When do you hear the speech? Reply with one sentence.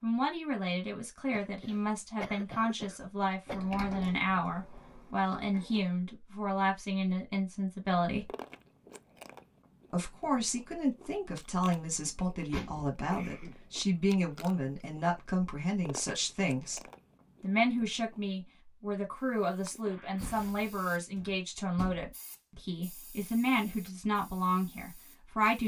The speech can be heard from 0.0 to 8.2 s, from 9.9 to 16.8 s and from 17.4 to 25.6 s.